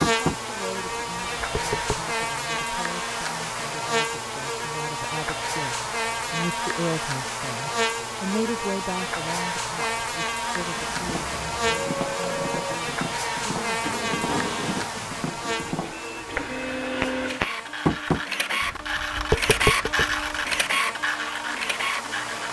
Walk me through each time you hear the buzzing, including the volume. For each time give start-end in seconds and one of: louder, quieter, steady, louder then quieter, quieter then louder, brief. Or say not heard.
0.0-22.4 quieter.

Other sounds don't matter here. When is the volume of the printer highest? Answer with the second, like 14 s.
20 s.